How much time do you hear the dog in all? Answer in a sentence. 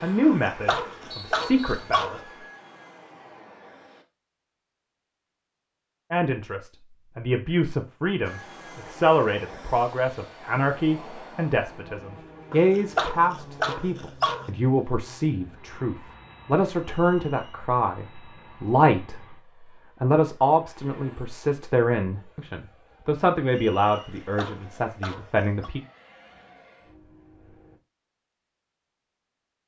You can hear the dog for 6 seconds altogether.